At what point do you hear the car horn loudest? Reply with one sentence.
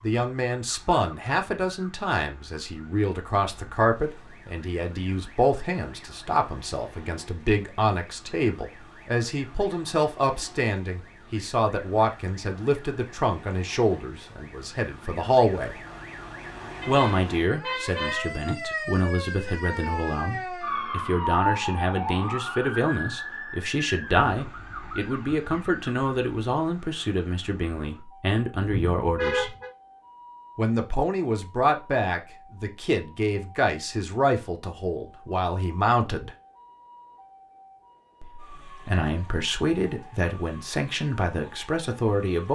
The volume of the car horn peaks at 29 seconds.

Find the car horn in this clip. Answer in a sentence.
You can hear the car horn from 16.8 to 18.4 s and from 28.6 to 29.7 s.